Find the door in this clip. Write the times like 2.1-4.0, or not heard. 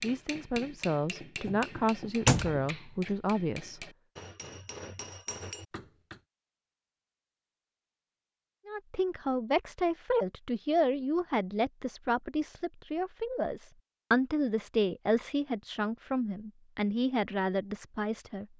1.4-2.7.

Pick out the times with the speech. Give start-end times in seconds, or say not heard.
0.0-3.8, 8.7-18.4.